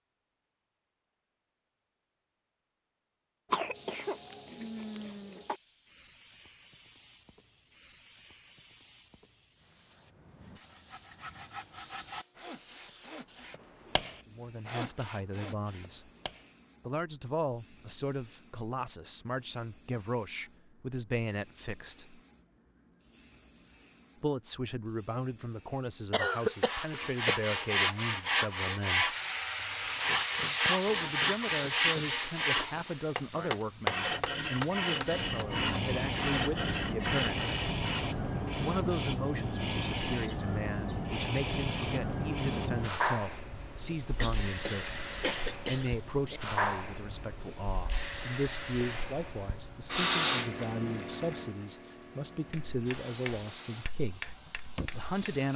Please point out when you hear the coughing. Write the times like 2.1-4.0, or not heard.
3.5-5.5, 26.1-27.4, 44.1-46.4.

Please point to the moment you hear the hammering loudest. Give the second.
34 s.